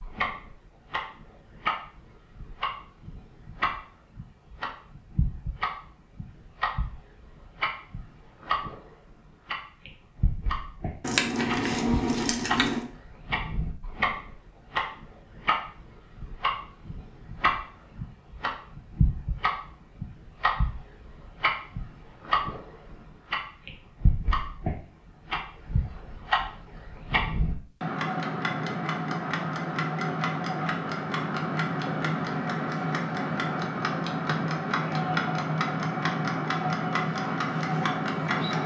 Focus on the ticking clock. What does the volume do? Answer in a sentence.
The loudness of the ticking clock goes up.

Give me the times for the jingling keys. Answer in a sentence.
You can hear the jingling keys from 11.0 to 12.8 s.